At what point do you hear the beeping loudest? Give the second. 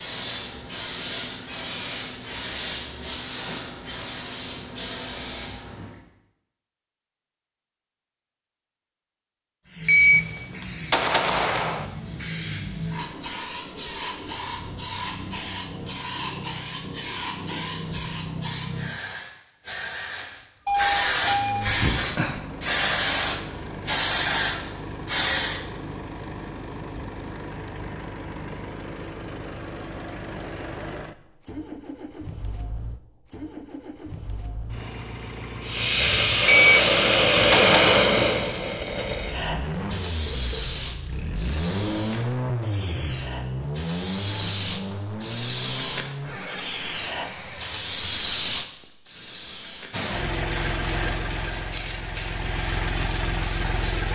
10 s.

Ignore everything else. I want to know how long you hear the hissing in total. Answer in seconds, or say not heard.
40 s.